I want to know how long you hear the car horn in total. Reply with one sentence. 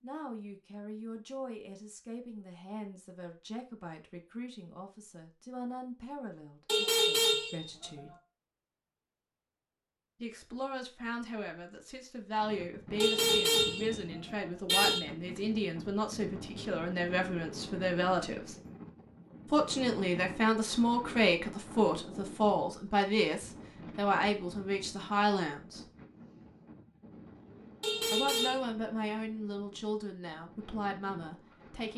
The car horn can be heard for 4 seconds in total.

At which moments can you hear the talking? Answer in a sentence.
You can hear the talking from 0.0 to 8.2 s, from 10.2 to 18.6 s, from 19.5 to 25.8 s and from 28.1 to 31.9 s.